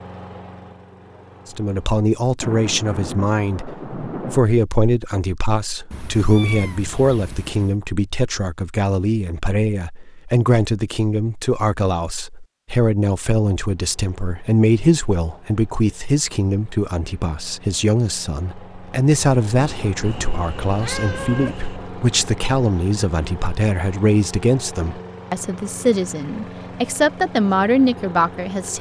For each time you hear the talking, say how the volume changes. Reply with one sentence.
You can hear the talking from 1.4 to 28.7 s, at a steady volume.